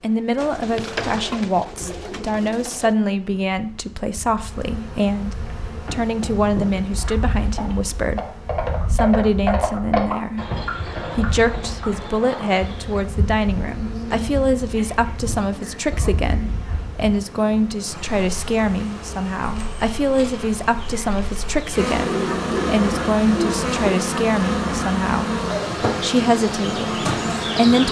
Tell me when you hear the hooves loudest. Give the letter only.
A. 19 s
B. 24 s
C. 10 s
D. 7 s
C.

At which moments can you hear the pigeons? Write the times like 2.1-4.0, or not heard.
0.3-3.0, 21.9-23.9.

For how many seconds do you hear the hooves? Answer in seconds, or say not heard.
7 s.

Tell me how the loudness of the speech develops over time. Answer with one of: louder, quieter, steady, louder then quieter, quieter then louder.
steady.